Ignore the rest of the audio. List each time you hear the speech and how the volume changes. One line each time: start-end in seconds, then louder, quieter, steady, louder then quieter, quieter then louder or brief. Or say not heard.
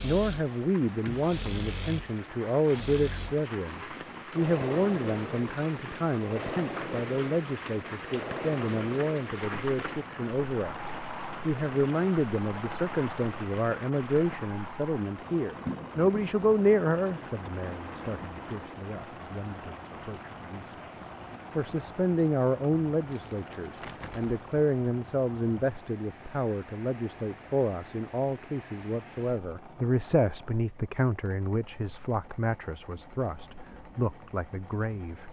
0.0-35.2 steady.